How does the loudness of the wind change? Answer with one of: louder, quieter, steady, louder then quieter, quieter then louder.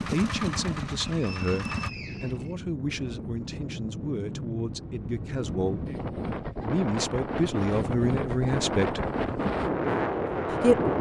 louder.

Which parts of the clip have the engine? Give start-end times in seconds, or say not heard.
0.0-1.9.